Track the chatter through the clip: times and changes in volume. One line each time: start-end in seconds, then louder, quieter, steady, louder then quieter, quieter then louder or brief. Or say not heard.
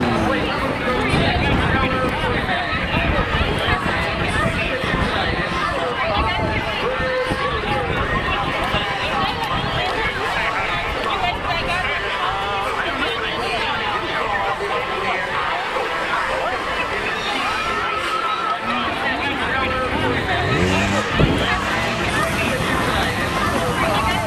0.0-24.2 steady.